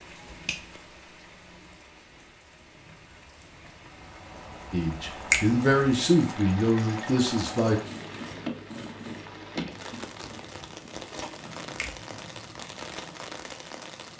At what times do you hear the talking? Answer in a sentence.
You can hear the talking from 4.7 to 7.8 s.